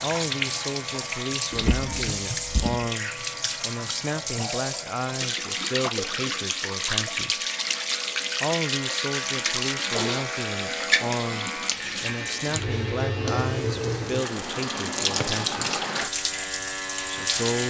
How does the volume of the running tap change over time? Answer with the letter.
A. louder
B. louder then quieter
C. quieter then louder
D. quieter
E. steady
E.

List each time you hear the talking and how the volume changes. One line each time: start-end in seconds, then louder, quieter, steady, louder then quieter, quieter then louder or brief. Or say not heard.
0.0-7.5 steady
8.4-15.8 steady
17.1-17.6 brief.